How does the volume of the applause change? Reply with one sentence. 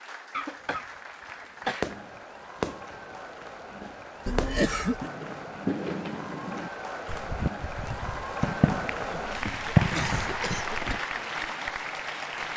The volume of the applause goes up.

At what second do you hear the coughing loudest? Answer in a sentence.
The volume of the coughing peaks at 5 seconds.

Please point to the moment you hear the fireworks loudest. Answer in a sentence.
The volume of the fireworks peaks at 10 seconds.